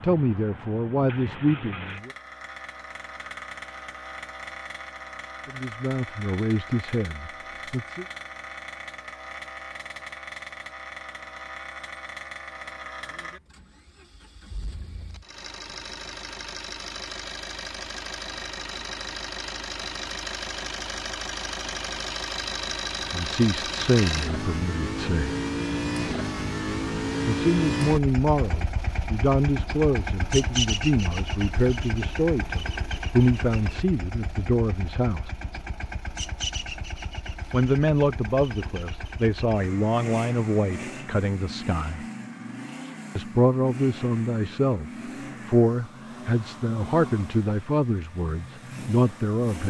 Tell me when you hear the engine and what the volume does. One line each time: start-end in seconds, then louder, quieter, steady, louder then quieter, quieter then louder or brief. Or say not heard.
0.0-49.6 louder then quieter.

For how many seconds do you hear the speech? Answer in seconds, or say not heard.
26 s.